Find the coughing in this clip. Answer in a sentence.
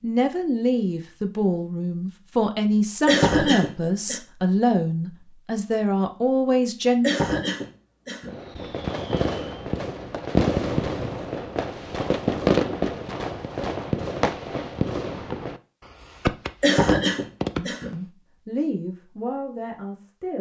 The coughing can be heard from 3.0 to 4.2 s, from 7.0 to 8.3 s and from 16.6 to 17.9 s.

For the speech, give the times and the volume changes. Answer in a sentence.
The speech can be heard from 0.0 to 7.1 s, at a steady volume; and briefly from 17.6 to 20.3 s.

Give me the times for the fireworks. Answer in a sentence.
You can hear the fireworks from 8.2 to 17.9 s.